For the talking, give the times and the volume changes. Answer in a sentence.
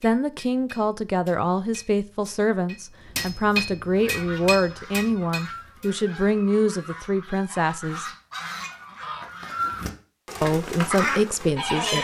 The talking can be heard from 0.0 to 8.1 s, at a steady volume; and briefly from 10.4 to 11.9 s.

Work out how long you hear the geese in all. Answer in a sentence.
The geese can be heard for 8 seconds in total.